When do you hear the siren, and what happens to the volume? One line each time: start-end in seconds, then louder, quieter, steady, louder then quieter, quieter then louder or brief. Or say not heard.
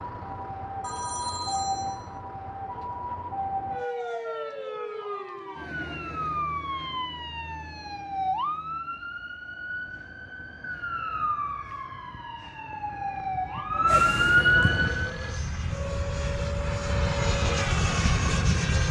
0.0-15.1 louder.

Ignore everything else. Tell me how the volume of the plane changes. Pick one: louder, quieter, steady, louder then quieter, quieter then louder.
louder.